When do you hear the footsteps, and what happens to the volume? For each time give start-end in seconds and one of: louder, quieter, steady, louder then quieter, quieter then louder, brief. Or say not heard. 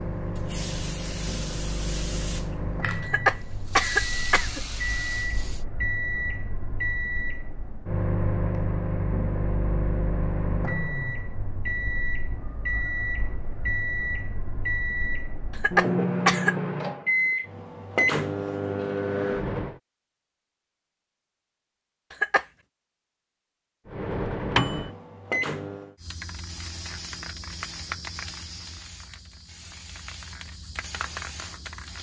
not heard.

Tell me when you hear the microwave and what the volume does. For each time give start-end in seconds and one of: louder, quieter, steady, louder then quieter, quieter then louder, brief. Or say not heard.
0.0-19.8 louder
23.9-25.9 brief.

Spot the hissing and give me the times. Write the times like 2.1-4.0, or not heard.
0.0-5.7, 26.0-31.9.